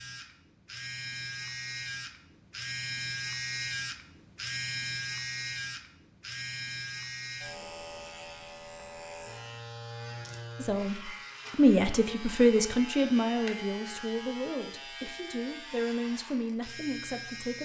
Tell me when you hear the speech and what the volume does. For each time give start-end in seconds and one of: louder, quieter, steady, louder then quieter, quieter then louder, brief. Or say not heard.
10.6-17.6 quieter.